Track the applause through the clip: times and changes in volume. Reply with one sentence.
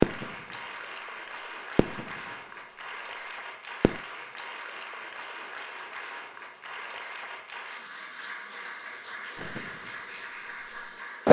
You can hear the applause from 0.0 to 11.2 s, at a steady volume.